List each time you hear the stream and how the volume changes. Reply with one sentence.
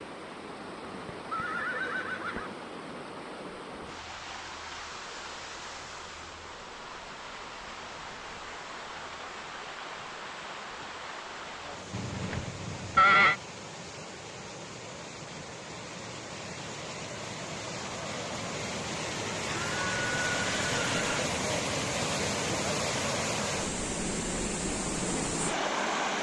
The stream can be heard from 0.0 to 26.1 s, getting louder.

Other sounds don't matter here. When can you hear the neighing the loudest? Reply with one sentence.
The loudest moment of the neighing is at 13 seconds.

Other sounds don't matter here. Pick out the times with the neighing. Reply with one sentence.
You can hear the neighing from 0.8 to 2.5 s, from 11.9 to 13.3 s and from 19.4 to 21.2 s.